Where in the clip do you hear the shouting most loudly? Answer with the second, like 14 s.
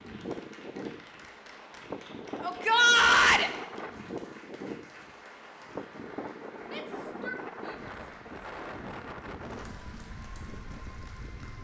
3 s.